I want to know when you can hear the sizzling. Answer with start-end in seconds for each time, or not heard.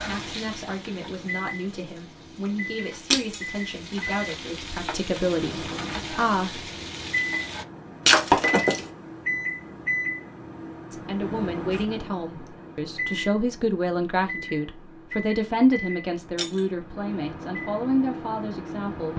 0.0-7.7.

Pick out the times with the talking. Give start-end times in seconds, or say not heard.
0.0-6.6, 10.9-19.1.